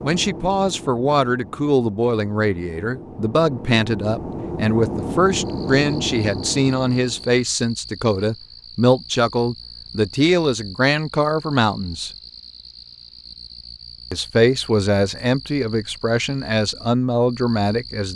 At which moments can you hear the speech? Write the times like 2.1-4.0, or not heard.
0.0-12.1, 14.1-18.1.